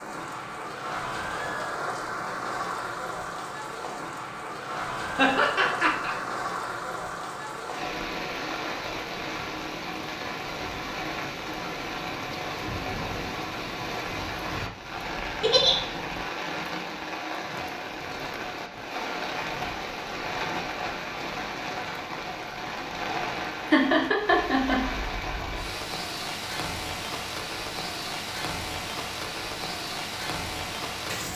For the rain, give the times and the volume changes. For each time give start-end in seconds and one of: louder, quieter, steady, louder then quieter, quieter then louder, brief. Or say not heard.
0.0-31.3 steady.